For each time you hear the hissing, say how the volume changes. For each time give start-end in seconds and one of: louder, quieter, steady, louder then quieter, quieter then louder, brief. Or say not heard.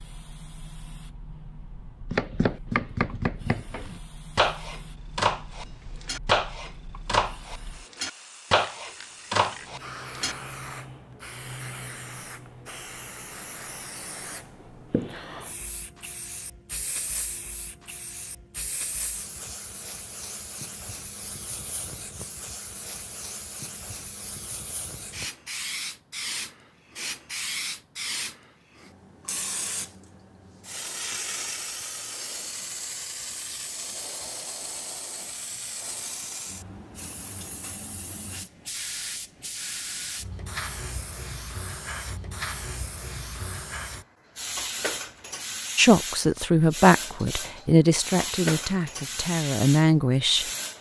0.0-50.7 louder.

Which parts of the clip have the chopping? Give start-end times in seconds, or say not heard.
2.1-10.3.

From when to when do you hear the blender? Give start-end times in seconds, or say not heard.
not heard.